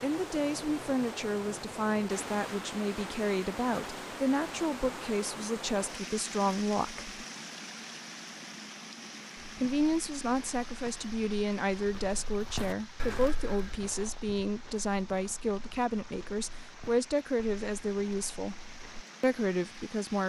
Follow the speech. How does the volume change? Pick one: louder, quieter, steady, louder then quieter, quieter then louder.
steady.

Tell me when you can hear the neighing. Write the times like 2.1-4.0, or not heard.
not heard.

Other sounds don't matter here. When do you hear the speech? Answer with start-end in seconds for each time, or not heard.
0.0-7.2, 9.6-20.2.